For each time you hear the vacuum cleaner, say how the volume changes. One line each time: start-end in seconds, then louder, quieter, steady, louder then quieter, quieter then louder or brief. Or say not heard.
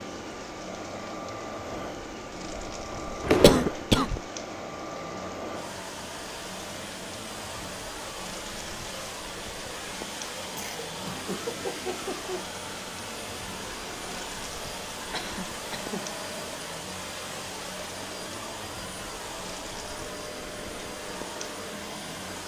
0.0-22.4 steady.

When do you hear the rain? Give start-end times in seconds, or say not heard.
0.0-22.4.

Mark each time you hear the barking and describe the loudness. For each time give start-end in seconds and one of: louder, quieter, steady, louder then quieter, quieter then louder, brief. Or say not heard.
not heard.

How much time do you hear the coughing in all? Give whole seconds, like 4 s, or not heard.
4 s.